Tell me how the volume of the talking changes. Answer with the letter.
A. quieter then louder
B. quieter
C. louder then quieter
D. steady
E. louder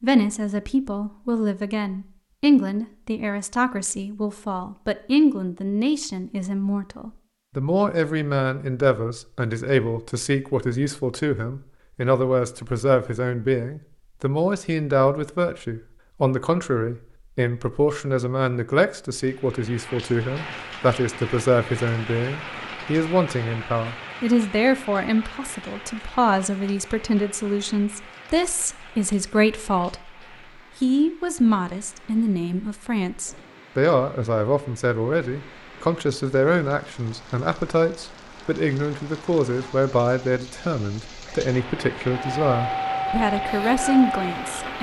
D.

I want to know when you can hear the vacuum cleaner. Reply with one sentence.
You can hear the vacuum cleaner from 42.3 to 44.7 s.